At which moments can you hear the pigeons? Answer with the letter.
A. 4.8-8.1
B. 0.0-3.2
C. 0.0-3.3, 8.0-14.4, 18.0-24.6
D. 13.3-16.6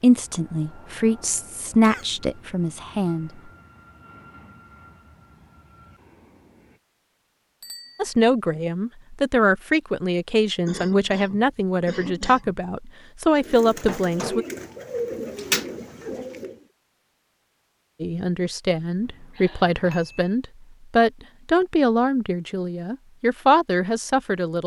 D.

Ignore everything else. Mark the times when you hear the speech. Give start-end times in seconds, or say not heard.
0.0-3.3, 8.0-14.4, 18.0-24.6.